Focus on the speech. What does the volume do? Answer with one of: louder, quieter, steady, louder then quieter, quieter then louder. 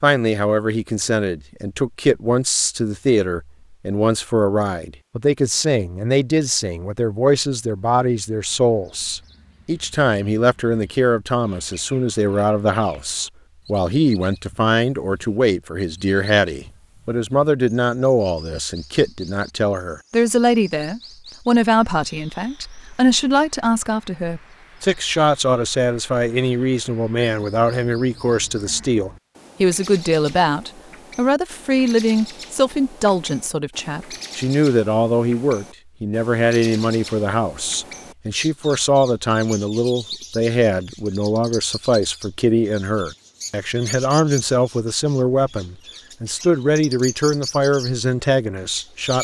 steady.